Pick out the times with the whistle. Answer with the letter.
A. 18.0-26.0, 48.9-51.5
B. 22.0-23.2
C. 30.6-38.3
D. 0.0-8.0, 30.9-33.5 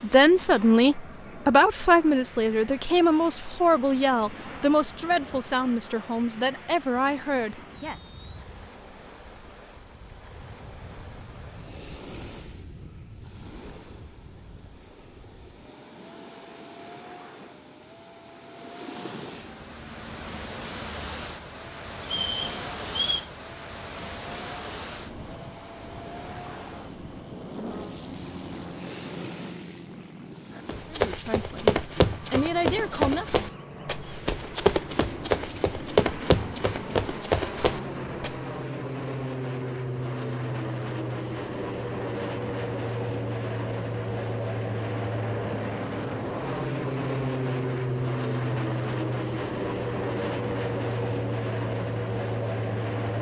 B.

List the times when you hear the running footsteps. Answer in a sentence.
The running footsteps can be heard from 30.6 to 38.3 s.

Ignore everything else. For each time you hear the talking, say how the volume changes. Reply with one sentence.
The talking can be heard from 0.0 to 8.0 s, getting quieter; and briefly from 30.9 to 33.5 s.